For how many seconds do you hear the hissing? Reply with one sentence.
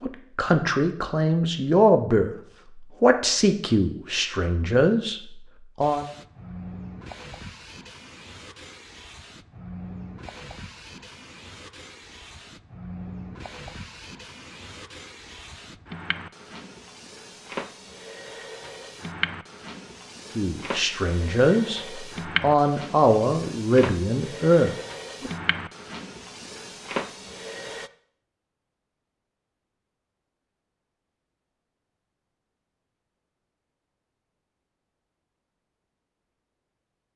You can hear the hissing for 22 seconds altogether.